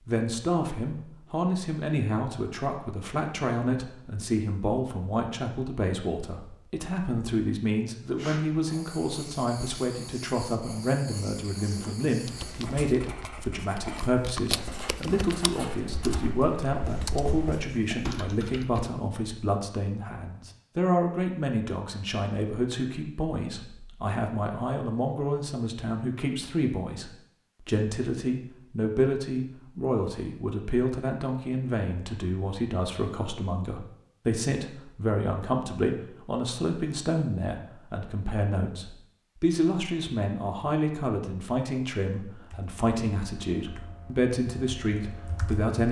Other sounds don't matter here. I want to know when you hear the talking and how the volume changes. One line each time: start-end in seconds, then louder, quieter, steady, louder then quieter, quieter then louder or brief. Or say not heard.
0.1-45.8 steady.